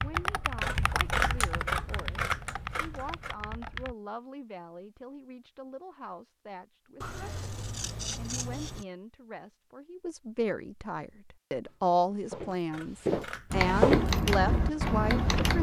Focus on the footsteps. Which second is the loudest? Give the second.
14 s.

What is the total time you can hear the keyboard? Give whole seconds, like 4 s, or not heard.
6 s.